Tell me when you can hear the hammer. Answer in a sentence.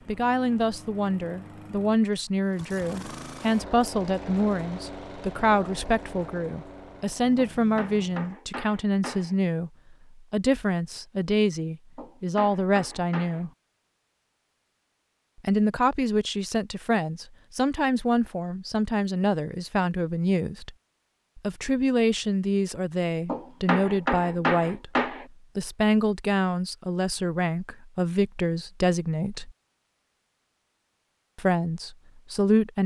The hammer can be heard from 7.5 to 9.3 s, from 11.9 to 13.4 s and from 23.2 to 25.2 s.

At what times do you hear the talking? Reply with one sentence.
You can hear the talking from 0.1 to 13.5 s, from 15.4 to 20.7 s, from 21.4 to 29.5 s and from 31.4 to 32.8 s.